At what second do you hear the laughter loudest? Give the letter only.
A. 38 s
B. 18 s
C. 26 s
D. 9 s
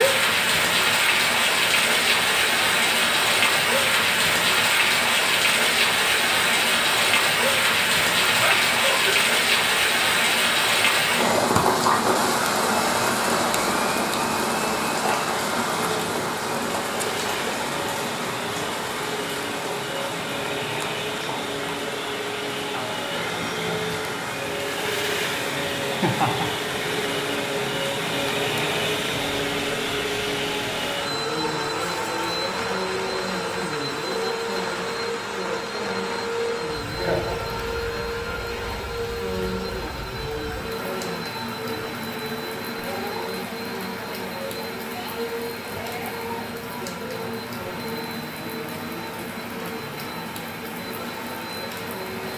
C.